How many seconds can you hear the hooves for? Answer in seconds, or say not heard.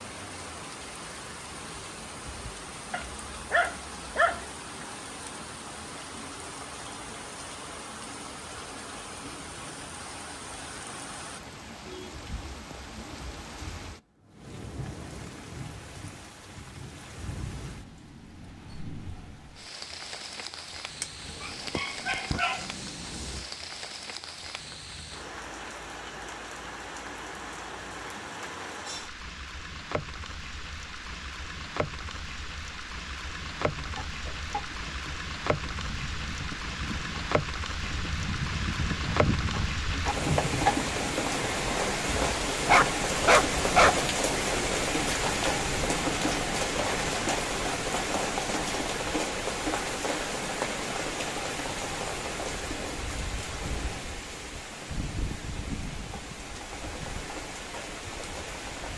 7 s.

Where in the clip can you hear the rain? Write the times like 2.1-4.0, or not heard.
0.0-58.9.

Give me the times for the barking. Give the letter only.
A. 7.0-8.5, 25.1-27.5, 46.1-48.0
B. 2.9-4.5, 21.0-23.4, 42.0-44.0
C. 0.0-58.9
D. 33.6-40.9
B.